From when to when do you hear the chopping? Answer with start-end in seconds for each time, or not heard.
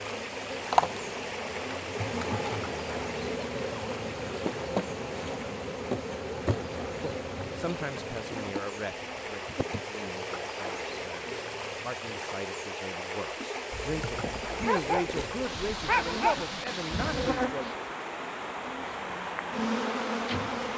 not heard.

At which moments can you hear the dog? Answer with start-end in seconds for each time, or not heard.
13.7-16.4.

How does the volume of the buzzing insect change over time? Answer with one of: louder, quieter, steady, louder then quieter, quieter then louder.
quieter then louder.